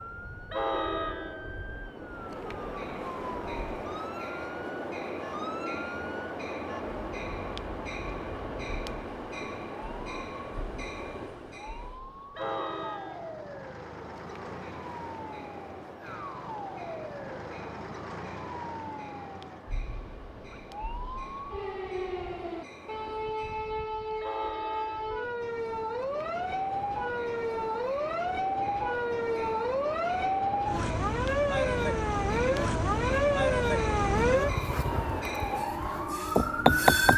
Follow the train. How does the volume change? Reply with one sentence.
The volume of the train goes down, then up.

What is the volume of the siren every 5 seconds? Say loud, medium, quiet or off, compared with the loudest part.
quiet, quiet, quiet, quiet, medium, medium, loud, loud.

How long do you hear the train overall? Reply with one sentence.
The train can be heard for 37 seconds in total.